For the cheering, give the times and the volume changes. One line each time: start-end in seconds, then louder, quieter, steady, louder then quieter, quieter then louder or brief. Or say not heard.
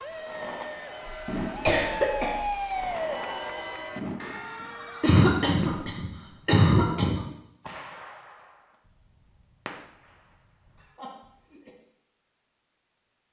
0.0-5.2 louder then quieter.